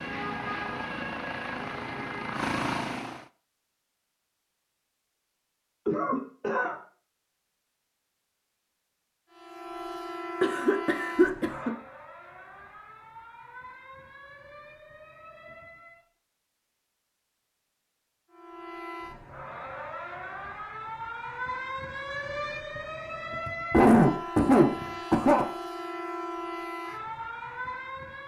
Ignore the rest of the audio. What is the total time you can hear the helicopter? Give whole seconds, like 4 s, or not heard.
3 s.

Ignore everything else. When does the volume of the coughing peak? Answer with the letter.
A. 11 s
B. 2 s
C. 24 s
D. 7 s
C.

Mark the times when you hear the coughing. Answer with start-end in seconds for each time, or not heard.
5.8-6.8, 10.4-11.8, 23.4-25.4.